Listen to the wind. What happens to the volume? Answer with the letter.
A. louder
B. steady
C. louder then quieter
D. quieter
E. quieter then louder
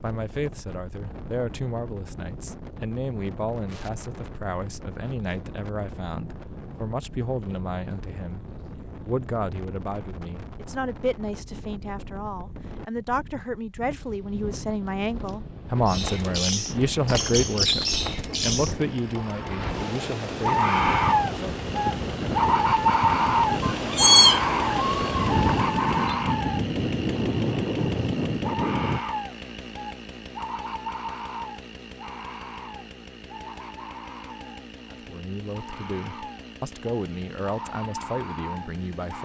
A.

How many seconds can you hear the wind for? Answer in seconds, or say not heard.
29 s.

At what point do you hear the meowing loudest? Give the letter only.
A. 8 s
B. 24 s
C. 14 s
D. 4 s
B.